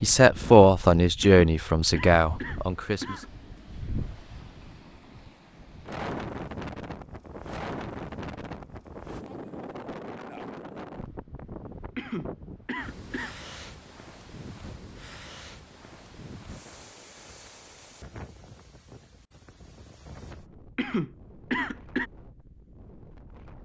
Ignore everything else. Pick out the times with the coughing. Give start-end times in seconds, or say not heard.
1.2-3.3, 11.9-13.3, 20.8-22.1.